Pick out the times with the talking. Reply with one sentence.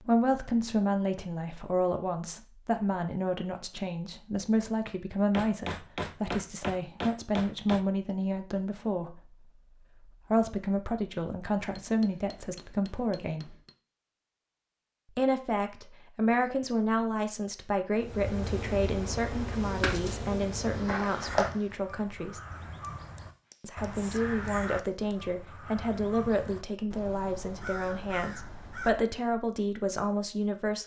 You can hear the talking from 0.0 to 13.6 s, from 15.2 to 22.4 s and from 23.6 to 30.8 s.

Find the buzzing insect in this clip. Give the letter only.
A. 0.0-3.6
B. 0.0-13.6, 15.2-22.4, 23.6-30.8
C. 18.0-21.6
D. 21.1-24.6
C.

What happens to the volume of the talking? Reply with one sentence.
The loudness of the talking stays about the same.